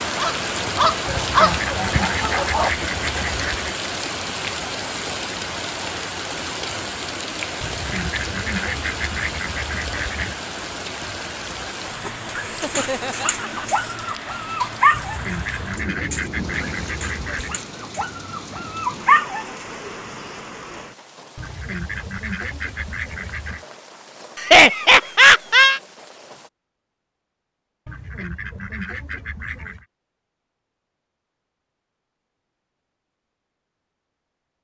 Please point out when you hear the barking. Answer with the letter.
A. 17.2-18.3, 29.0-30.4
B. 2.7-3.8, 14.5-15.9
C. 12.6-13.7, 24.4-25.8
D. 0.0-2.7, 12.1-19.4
D.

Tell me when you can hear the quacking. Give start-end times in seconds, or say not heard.
1.1-3.8, 7.6-10.4, 14.9-17.6, 21.4-23.6, 27.9-29.9.